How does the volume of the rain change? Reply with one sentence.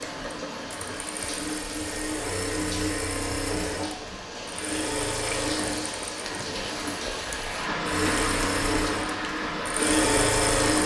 The loudness of the rain goes up.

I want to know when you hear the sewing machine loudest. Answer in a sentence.
The loudest moment of the sewing machine is at 10 seconds.